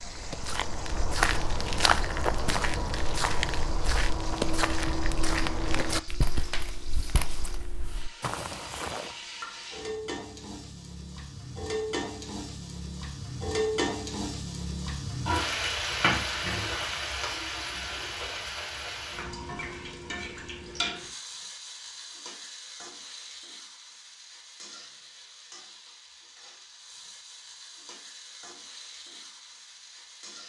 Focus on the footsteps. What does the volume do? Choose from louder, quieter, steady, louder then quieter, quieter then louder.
quieter.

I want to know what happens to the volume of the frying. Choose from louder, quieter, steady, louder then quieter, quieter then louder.
louder then quieter.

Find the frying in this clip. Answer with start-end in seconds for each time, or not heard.
0.0-30.4.